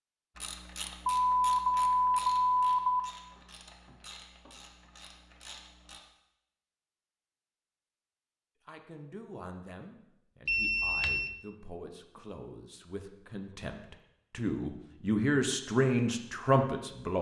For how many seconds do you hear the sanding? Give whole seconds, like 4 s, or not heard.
not heard.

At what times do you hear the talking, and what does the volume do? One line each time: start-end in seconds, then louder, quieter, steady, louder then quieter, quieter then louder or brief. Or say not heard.
8.7-17.1 louder.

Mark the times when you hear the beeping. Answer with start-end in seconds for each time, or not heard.
1.1-3.0, 10.4-11.3.